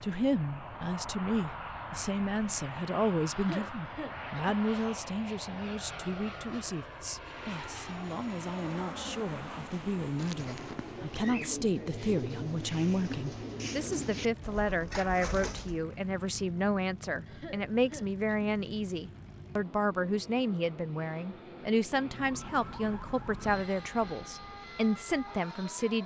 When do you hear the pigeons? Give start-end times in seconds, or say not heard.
9.7-15.8.